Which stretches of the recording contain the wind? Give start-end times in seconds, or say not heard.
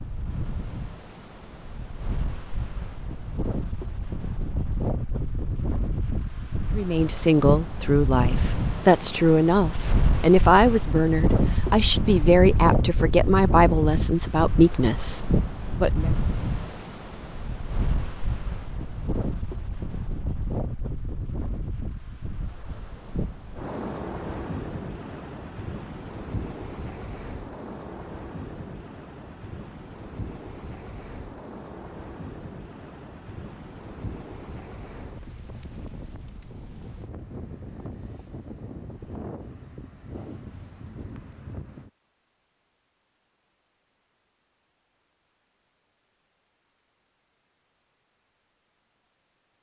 0.0-41.9.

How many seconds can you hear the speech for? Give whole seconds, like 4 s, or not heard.
9 s.